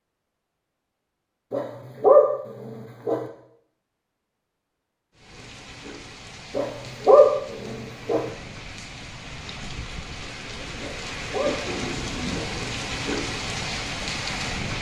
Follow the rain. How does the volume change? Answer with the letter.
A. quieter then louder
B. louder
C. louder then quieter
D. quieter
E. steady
B.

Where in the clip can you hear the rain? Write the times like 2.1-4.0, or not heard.
5.2-14.7.